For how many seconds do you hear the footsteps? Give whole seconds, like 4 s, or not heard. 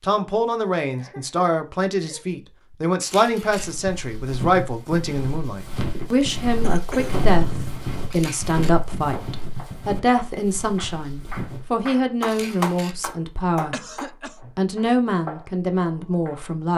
8 s.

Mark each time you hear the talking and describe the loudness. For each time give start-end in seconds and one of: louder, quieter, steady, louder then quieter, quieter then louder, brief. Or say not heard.
0.0-13.8 steady
14.6-16.7 brief.